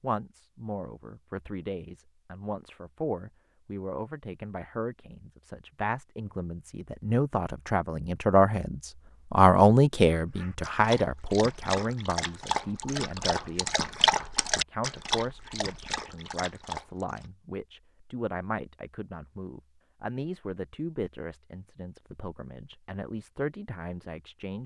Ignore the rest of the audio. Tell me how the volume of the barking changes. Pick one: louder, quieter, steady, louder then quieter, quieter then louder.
louder then quieter.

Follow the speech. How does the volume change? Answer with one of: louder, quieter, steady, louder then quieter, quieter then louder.
louder then quieter.